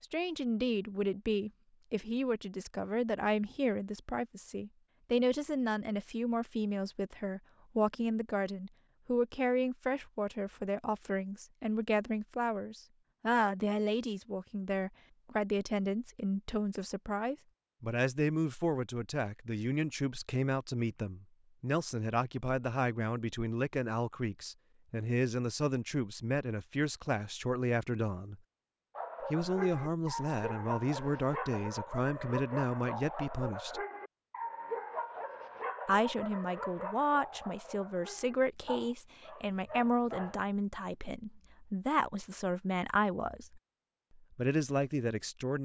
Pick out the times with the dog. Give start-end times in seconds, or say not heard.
28.9-40.5.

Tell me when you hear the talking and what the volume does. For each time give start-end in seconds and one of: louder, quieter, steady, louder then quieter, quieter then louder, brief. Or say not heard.
0.0-28.4 steady
29.2-33.8 steady
35.9-45.6 steady.